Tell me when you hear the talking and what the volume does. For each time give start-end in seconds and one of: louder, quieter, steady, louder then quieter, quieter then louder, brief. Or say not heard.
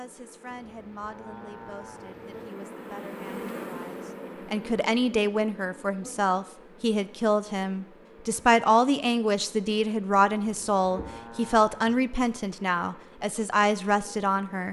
0.0-14.6 louder.